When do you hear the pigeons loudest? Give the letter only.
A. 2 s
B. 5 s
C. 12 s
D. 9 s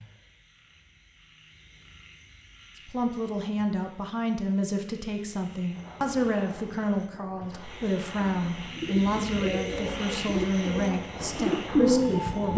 C.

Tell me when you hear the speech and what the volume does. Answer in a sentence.
The speech can be heard from 2.9 to 12.5 s, at a steady volume.